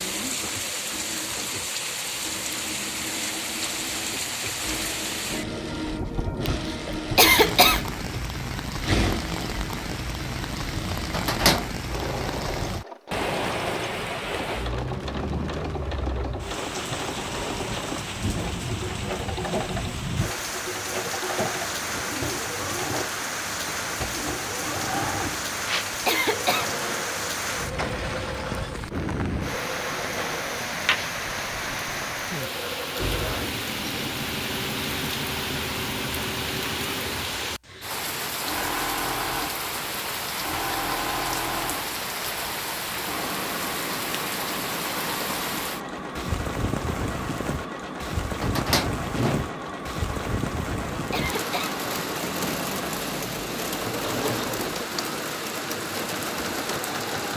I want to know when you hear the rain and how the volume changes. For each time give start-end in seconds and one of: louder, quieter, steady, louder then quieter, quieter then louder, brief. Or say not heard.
0.0-57.3 steady.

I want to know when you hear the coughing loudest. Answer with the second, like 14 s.
7 s.